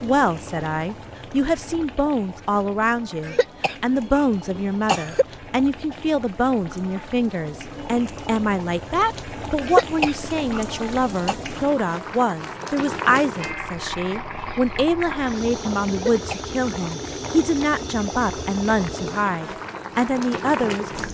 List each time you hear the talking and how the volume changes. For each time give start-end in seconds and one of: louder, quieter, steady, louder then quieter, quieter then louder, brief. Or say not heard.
0.0-21.0 steady.